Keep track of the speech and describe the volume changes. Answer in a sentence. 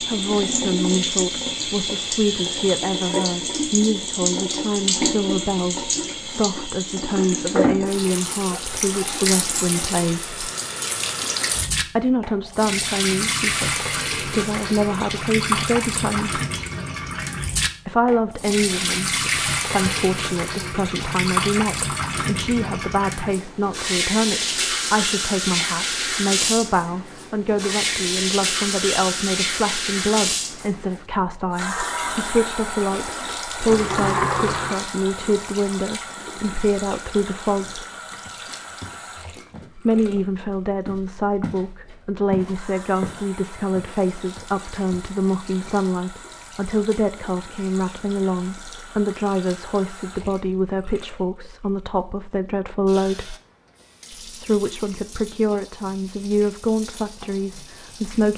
The volume of the speech stays about the same.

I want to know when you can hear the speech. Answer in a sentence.
You can hear the speech from 0.0 to 10.3 s, from 11.9 to 16.4 s, from 17.9 to 37.9 s, from 39.8 to 53.4 s and from 54.1 to 58.3 s.